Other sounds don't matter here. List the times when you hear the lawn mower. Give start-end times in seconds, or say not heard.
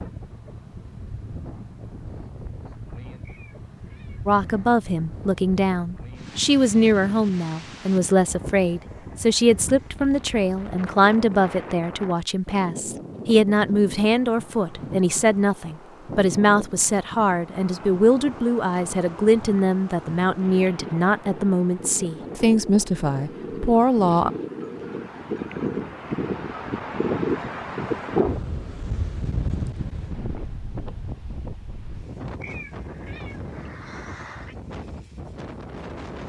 not heard.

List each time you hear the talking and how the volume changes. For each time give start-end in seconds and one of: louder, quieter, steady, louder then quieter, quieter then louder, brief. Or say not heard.
4.2-24.3 steady.